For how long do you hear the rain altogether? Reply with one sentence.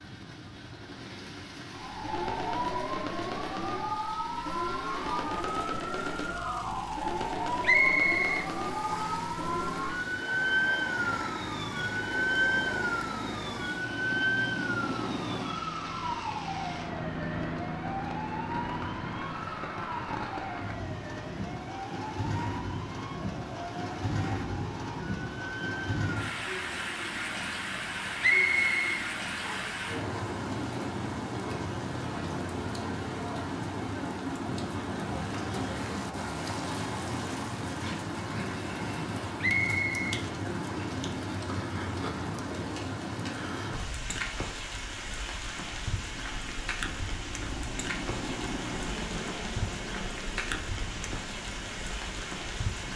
The rain can be heard for 53 seconds in total.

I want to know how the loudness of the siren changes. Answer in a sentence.
The loudness of the siren goes down.